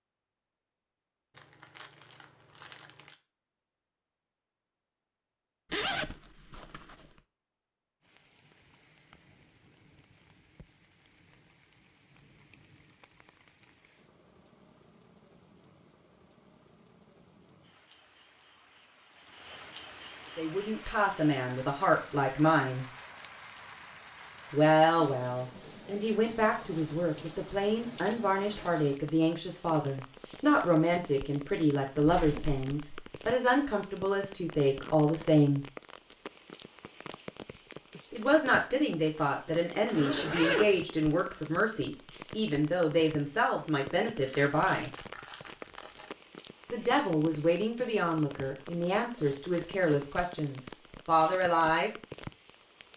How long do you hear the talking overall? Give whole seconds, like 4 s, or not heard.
26 s.